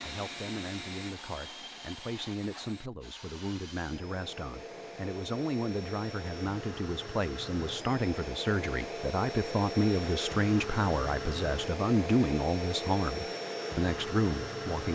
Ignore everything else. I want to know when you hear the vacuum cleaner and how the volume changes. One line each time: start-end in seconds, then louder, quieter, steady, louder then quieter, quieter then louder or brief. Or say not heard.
0.0-14.9 louder.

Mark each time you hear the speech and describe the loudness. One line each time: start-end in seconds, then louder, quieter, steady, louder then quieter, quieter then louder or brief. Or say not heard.
0.0-14.9 louder.